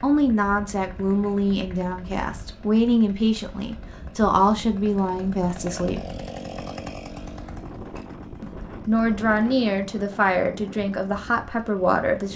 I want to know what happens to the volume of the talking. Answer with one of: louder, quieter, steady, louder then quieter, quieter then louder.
steady.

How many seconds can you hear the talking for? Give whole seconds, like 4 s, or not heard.
10 s.